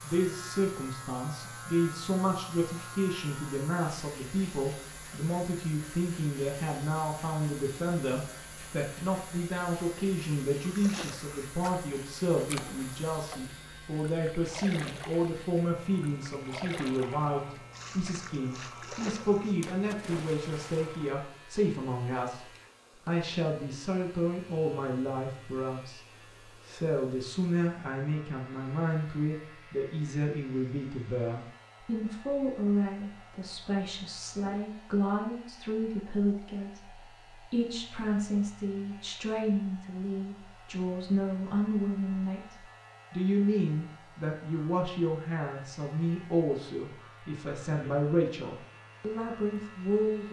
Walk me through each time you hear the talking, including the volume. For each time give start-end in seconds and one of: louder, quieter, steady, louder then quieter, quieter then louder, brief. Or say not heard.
0.0-22.4 steady
23.1-26.0 brief
26.6-50.2 steady.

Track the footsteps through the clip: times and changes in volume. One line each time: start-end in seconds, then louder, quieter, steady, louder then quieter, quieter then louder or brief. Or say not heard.
not heard.